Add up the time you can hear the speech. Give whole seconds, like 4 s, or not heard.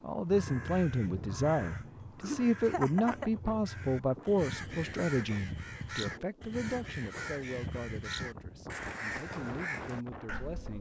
11 s.